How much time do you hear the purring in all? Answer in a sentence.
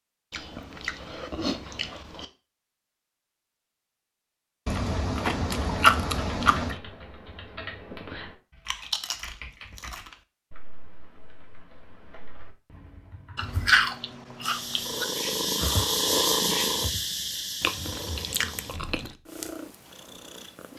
You can hear the purring for 6 seconds altogether.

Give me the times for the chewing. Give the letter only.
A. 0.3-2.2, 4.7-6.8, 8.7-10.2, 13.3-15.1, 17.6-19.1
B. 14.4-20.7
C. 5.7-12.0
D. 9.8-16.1
A.